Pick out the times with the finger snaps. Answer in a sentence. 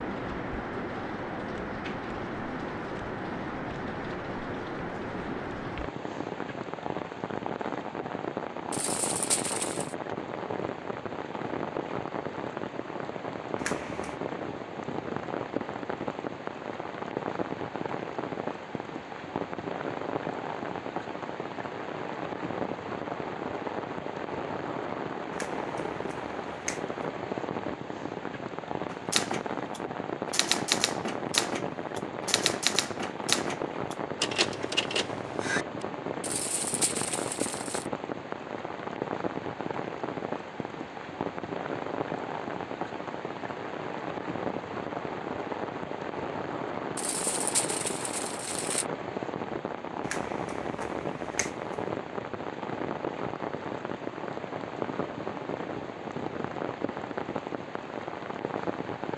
The finger snaps can be heard from 13.6 to 14.2 s, from 25.3 to 26.9 s and from 50.0 to 51.8 s.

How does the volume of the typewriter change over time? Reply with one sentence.
The volume of the typewriter stays about the same.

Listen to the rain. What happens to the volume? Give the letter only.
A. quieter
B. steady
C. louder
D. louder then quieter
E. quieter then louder
B.